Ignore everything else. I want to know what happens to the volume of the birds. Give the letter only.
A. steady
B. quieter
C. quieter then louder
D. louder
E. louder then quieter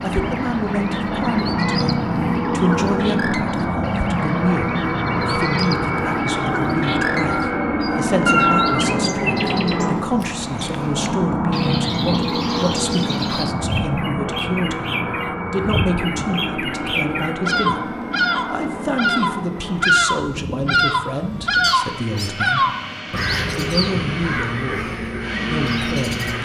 D.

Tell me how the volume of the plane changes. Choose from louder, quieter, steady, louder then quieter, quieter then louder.
quieter.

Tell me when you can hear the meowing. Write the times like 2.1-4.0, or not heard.
8.2-8.8, 21.6-22.3.